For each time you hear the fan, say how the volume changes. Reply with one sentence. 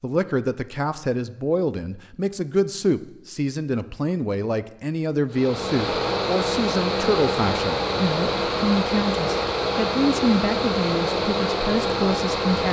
The fan can be heard from 5.3 to 12.6 s, at a steady volume.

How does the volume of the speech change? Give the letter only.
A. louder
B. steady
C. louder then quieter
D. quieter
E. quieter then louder
B.